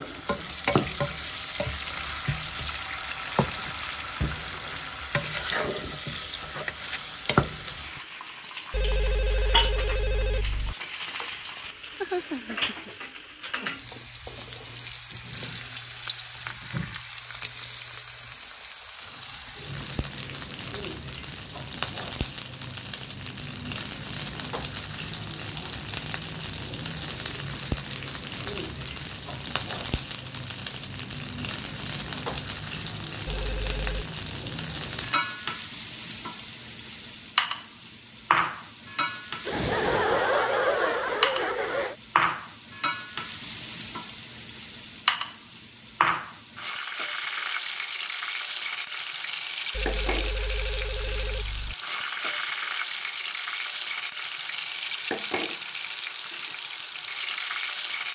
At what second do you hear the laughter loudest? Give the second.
40 s.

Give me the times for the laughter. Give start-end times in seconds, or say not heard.
11.6-12.9, 39.5-42.0.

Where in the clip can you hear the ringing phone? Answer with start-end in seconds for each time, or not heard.
8.7-10.8, 33.2-34.0, 49.7-51.8.